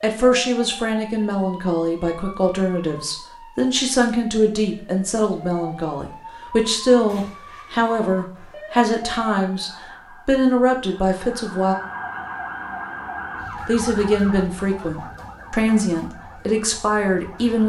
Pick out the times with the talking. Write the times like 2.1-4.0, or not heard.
0.0-11.8, 13.7-17.6.